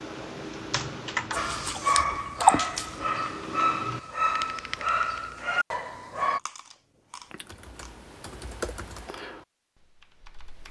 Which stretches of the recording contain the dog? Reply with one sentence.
You can hear the dog from 1.4 to 6.4 s.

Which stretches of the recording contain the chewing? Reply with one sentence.
You can hear the chewing from 1.4 to 2.9 s and from 6.3 to 8.0 s.